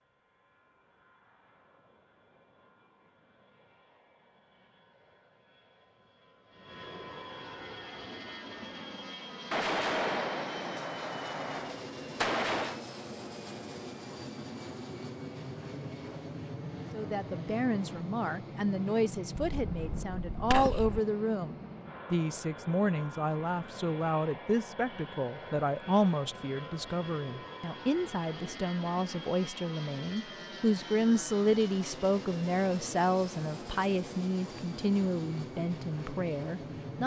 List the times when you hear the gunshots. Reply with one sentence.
You can hear the gunshots from 9.5 to 12.8 s and from 19.4 to 21.0 s.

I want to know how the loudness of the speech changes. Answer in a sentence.
The loudness of the speech stays about the same.